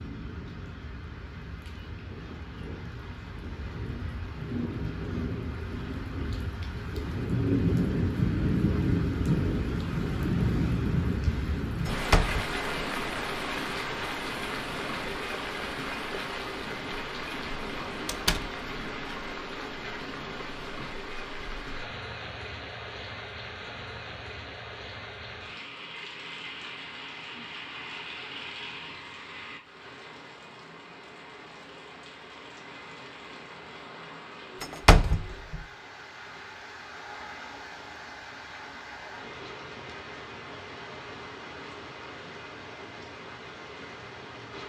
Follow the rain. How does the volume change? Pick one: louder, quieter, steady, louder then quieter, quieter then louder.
quieter.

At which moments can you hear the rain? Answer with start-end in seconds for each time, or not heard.
0.0-44.6.